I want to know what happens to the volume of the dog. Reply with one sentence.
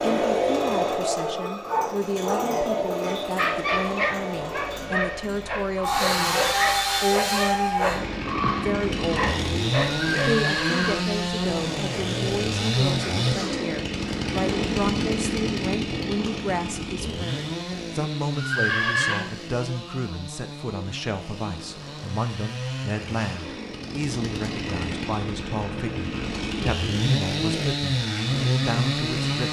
The volume of the dog stays about the same.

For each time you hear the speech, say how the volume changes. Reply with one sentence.
The speech can be heard from 0.0 to 29.4 s, at a steady volume.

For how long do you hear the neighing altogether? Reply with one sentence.
You can hear the neighing for 2 seconds altogether.